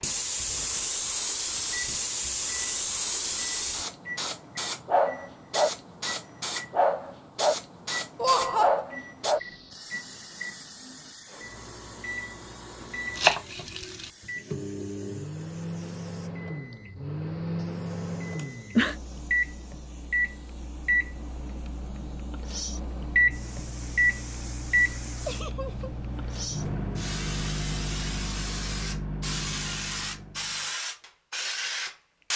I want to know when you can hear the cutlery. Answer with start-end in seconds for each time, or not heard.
not heard.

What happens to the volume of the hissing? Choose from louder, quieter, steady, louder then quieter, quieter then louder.
quieter then louder.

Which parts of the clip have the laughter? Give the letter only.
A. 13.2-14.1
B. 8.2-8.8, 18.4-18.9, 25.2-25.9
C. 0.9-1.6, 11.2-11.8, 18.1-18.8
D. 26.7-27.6
B.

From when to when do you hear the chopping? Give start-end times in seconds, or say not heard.
13.2-14.1.